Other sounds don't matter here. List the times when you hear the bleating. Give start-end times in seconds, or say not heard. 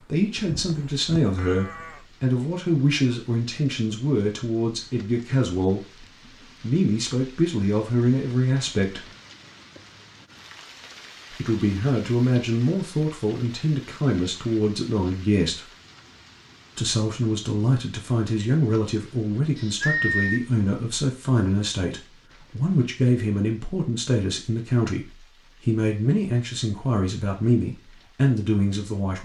0.3-2.0, 19.6-20.4.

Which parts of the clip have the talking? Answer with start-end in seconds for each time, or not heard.
0.0-9.1, 11.3-15.7, 16.8-29.2.